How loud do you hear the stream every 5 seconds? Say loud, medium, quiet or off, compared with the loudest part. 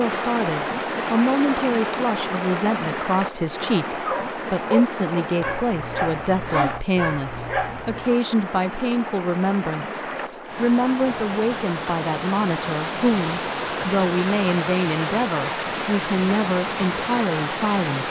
loud, medium, loud, loud.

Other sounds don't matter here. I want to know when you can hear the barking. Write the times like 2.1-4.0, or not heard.
4.0-8.2.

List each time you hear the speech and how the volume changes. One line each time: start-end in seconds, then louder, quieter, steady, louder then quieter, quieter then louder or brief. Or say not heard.
0.0-18.0 steady.